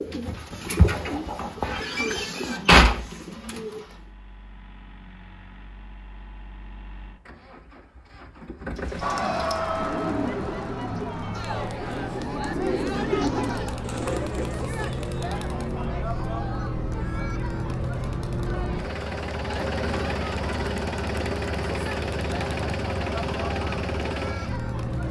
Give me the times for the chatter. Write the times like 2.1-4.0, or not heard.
9.0-25.0.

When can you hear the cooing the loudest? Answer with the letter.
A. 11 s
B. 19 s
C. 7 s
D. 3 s
D.